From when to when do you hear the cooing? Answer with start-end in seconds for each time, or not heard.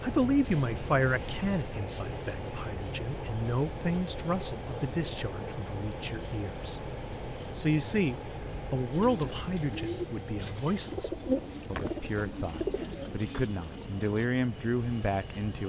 8.9-14.3.